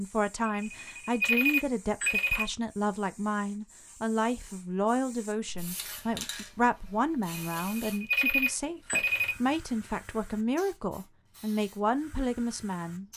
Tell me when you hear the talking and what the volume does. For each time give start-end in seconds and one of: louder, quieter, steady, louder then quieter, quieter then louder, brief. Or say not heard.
0.0-13.1 steady.